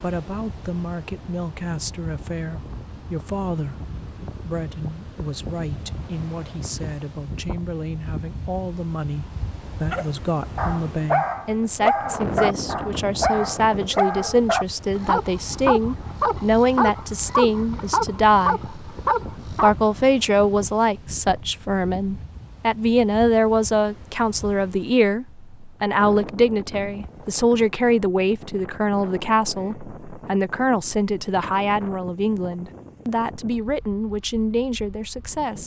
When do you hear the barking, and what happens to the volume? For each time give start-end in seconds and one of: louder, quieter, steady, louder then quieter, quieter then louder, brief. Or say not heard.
9.9-19.8 steady.